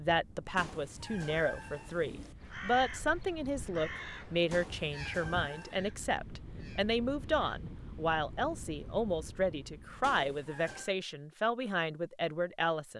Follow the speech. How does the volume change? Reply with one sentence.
The loudness of the speech stays about the same.